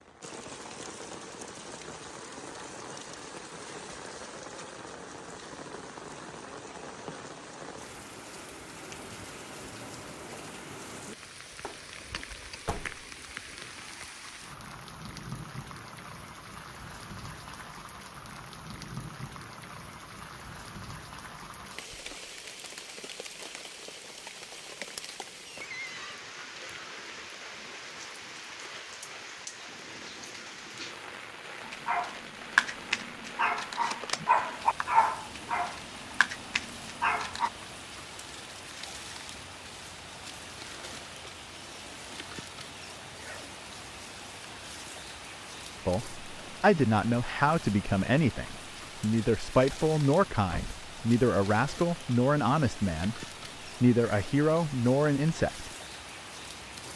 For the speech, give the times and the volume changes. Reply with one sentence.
You can hear the speech from 45.9 to 55.7 s, at a steady volume.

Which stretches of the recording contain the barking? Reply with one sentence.
The barking can be heard from 31.6 to 37.5 s.